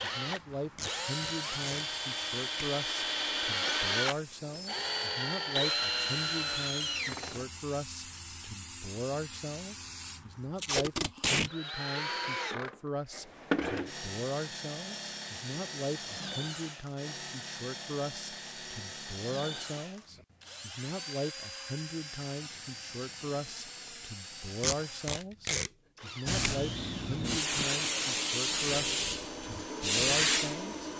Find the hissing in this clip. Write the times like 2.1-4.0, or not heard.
0.2-10.9, 26.2-30.9.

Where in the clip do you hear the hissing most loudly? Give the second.
30 s.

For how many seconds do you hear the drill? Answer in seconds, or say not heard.
27 s.